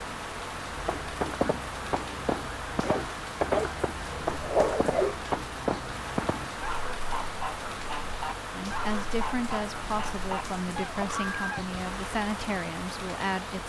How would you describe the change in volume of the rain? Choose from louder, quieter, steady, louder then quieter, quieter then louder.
steady.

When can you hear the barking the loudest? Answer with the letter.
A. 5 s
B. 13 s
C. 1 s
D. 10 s
A.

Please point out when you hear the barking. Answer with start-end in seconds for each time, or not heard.
2.8-5.3.